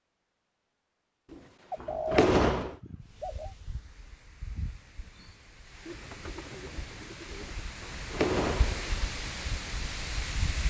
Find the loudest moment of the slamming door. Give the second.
2 s.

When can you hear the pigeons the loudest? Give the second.
2 s.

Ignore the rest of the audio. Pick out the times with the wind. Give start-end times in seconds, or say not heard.
3.0-10.6.